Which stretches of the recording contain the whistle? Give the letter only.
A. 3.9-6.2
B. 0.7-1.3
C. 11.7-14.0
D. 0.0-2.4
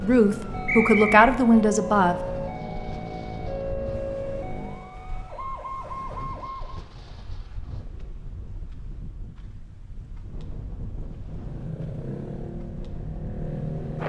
B.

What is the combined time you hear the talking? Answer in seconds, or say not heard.
2 s.